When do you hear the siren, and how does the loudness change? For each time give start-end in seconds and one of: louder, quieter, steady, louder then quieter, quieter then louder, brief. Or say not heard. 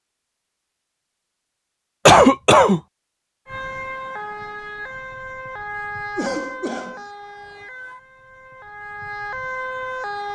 3.5-10.3 quieter then louder.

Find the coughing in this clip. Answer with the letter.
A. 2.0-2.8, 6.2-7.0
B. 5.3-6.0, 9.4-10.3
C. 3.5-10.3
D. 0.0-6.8
A.